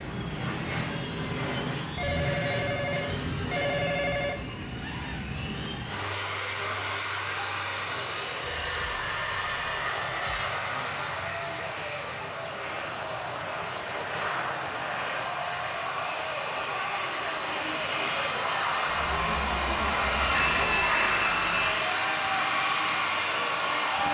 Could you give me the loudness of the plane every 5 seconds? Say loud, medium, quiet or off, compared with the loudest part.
medium, medium, medium, loud, loud.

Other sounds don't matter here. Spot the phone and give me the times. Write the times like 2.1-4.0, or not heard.
1.9-4.4, 8.4-10.4, 20.3-21.9.